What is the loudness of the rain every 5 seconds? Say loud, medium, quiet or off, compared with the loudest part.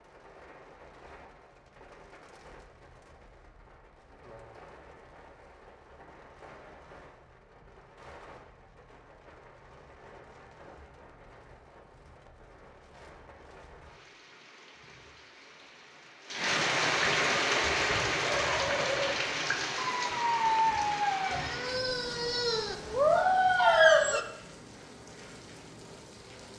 quiet, quiet, quiet, loud, medium, quiet.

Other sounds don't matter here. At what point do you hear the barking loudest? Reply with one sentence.
The loudest moment of the barking is at 24 seconds.